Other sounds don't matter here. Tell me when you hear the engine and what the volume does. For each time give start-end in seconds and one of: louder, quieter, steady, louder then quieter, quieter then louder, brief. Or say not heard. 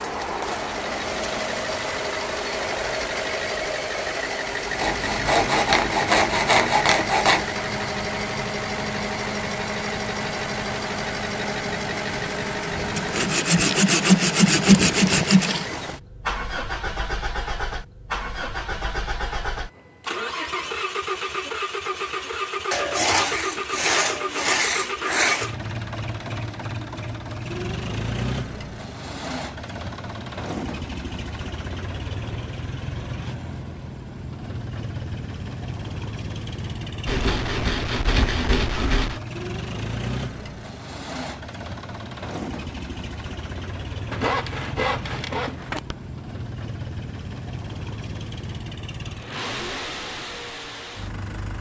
0.0-51.5 quieter.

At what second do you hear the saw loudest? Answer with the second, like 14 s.
15 s.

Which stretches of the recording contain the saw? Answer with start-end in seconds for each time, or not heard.
4.8-7.5, 12.9-15.7, 22.7-25.5, 37.0-39.2, 44.1-46.0.